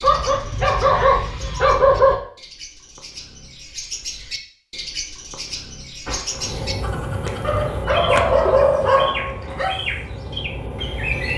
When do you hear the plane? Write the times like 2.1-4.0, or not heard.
6.3-11.3.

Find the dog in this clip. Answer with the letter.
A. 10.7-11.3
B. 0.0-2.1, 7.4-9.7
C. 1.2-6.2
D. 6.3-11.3
B.